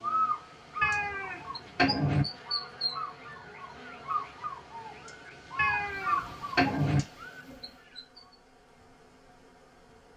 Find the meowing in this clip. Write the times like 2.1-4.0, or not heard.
0.8-2.2, 5.5-7.0.